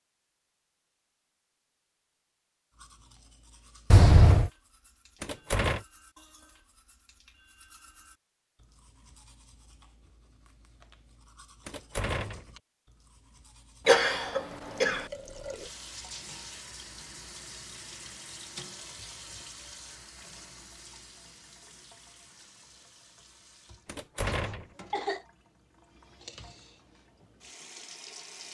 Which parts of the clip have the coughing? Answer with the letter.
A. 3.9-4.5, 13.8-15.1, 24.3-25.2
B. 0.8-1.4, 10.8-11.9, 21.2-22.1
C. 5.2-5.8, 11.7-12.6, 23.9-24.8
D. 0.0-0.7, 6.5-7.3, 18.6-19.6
A.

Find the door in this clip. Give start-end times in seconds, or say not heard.
5.2-5.8, 11.7-12.6, 23.9-24.8.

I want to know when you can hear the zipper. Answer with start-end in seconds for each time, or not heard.
not heard.